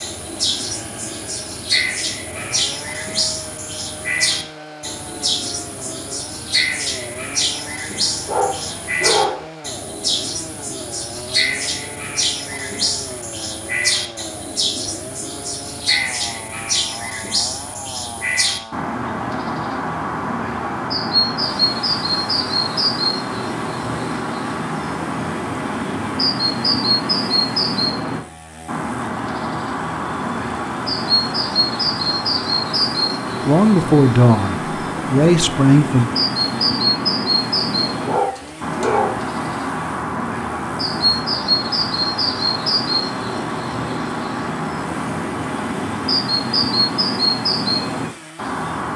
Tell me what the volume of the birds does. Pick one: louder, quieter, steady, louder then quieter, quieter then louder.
steady.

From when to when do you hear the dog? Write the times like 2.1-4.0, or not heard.
8.1-9.4, 38.0-39.2.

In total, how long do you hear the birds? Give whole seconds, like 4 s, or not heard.
49 s.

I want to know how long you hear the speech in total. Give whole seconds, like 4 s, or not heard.
3 s.